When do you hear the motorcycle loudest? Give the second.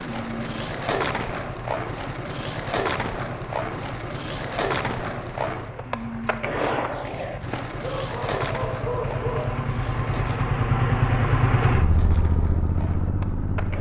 11 s.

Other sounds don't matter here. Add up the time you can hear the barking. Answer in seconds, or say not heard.
2 s.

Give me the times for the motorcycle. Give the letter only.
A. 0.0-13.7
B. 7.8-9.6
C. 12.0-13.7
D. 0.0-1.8
A.